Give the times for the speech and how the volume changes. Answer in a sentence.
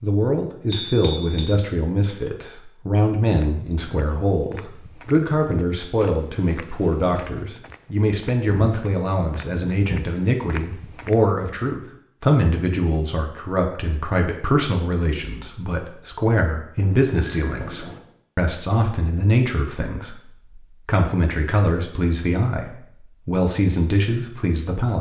You can hear the speech from 0.0 to 24.9 s, at a steady volume.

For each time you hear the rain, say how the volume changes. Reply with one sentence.
The rain can't be heard in this clip.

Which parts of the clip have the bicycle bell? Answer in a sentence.
You can hear the bicycle bell from 0.7 to 1.5 s and from 16.8 to 18.0 s.